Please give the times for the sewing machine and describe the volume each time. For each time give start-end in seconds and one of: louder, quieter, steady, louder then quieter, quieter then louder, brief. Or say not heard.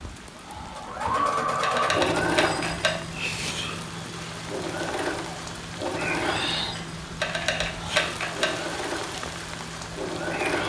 0.0-10.6 quieter.